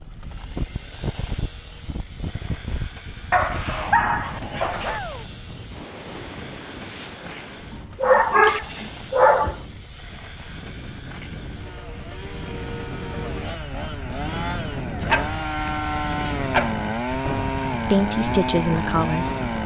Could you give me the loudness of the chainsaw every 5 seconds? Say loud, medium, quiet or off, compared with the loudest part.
quiet, quiet, medium, loud.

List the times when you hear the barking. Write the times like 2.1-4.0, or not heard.
3.3-5.0, 8.0-9.6, 14.8-16.8.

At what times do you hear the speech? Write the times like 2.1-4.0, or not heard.
17.9-19.3.